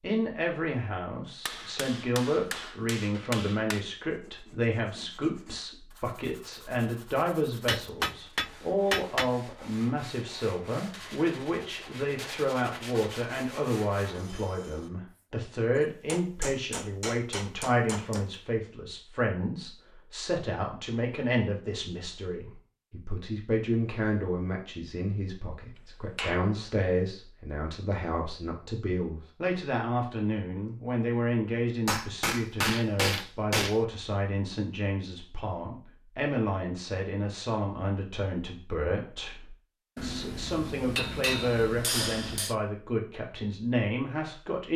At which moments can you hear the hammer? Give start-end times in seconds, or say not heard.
1.4-3.9, 7.7-9.3, 16.1-18.2, 26.1-26.6, 31.9-33.8, 40.0-42.5.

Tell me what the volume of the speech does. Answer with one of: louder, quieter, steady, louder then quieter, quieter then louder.
steady.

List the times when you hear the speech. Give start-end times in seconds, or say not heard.
0.0-44.7.